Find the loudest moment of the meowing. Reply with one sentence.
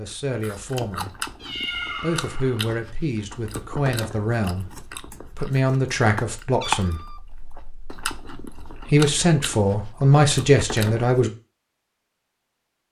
The loudest moment of the meowing is at 2 seconds.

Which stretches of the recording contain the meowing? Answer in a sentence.
You can hear the meowing from 1.4 to 2.5 s and from 6.6 to 7.2 s.